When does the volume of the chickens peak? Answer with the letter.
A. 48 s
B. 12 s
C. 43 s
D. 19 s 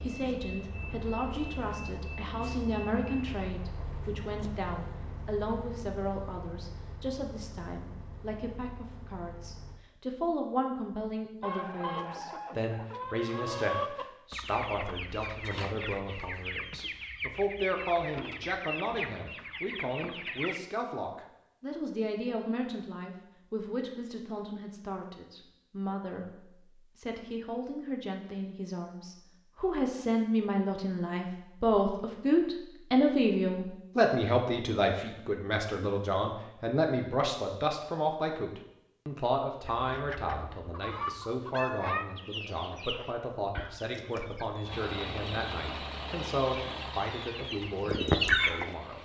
A.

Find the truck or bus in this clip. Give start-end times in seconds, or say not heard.
0.0-9.8, 44.6-49.0.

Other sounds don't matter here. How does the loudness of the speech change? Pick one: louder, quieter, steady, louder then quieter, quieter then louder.
louder then quieter.